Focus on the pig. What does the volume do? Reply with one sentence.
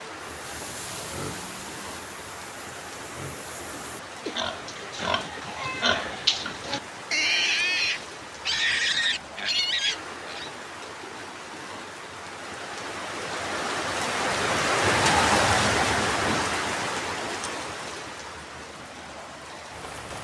The loudness of the pig goes up.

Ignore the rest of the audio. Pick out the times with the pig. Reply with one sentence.
The pig can be heard from 0.2 to 10.5 s.